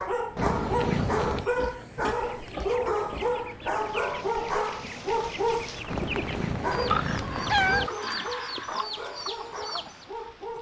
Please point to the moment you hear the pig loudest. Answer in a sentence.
The loudest moment of the pig is at 7 seconds.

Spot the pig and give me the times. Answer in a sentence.
You can hear the pig from 0.9 to 3.5 s and from 6.9 to 8.8 s.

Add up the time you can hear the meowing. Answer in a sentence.
The meowing can be heard for 3 seconds in total.